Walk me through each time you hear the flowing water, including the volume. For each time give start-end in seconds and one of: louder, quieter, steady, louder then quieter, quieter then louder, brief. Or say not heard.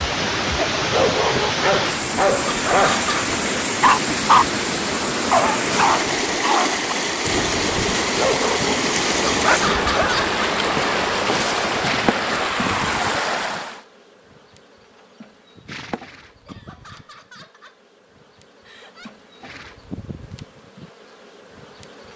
0.0-13.8 steady.